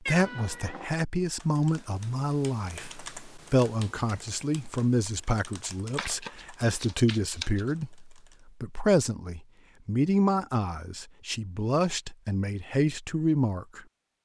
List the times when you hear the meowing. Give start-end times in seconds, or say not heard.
0.1-0.9.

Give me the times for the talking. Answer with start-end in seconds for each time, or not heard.
0.0-13.8.